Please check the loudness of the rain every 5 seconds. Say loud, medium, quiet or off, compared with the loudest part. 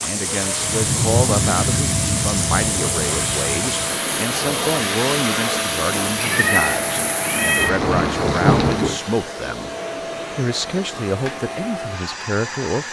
loud, loud, off.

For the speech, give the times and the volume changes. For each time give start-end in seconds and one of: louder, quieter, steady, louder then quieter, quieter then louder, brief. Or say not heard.
0.0-9.7 steady
10.3-12.8 brief.